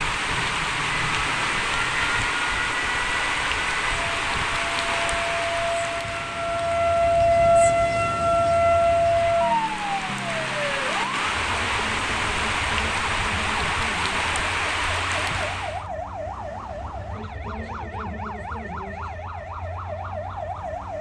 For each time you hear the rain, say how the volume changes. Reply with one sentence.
The rain can be heard from 0.0 to 15.8 s, getting quieter then louder.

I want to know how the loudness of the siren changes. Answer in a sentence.
The loudness of the siren goes up, then down.